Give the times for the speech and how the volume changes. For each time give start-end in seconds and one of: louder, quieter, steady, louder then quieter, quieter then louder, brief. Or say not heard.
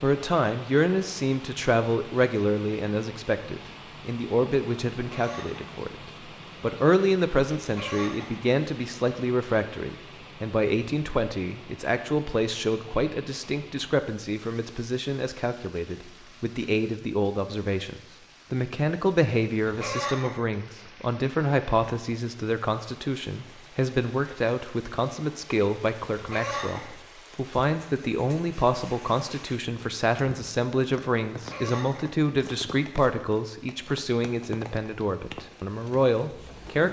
0.0-36.8 steady.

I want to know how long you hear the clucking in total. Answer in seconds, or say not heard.
4 s.